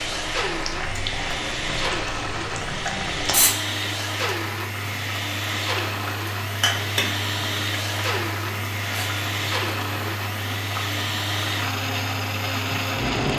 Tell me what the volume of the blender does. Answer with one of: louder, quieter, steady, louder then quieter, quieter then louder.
steady.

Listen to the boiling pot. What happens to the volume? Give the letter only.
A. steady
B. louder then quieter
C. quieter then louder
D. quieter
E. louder
A.